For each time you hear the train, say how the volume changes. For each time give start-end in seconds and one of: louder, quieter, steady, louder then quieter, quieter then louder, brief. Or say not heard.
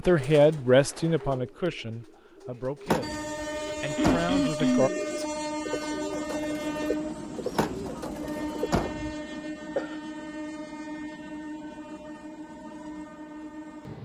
3.0-13.9 quieter.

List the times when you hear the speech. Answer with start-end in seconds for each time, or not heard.
0.0-4.9.